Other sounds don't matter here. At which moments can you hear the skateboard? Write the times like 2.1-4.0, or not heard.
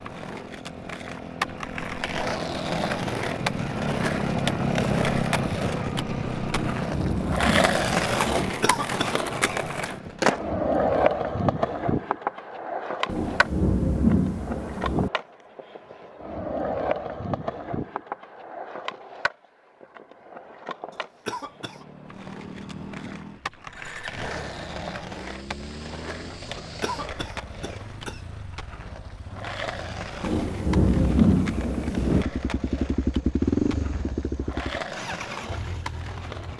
0.0-36.5.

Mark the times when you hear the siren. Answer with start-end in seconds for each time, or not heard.
not heard.